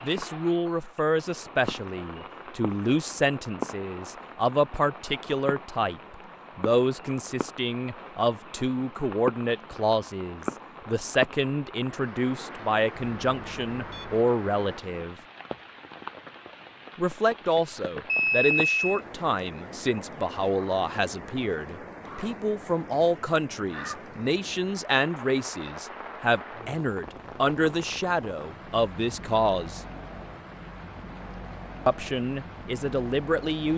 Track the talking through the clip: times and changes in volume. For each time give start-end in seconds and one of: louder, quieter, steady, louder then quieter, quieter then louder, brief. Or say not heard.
0.0-15.2 steady
16.9-29.8 steady
31.9-33.7 brief.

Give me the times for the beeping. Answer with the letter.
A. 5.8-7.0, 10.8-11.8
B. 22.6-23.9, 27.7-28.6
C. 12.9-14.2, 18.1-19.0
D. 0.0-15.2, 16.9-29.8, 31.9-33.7
C.